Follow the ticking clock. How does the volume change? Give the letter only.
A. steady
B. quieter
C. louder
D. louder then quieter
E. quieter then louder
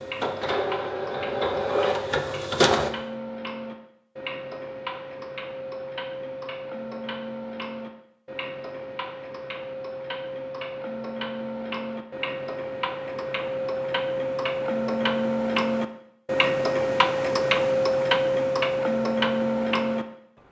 C.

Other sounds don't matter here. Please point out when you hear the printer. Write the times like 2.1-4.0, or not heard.
0.0-2.9.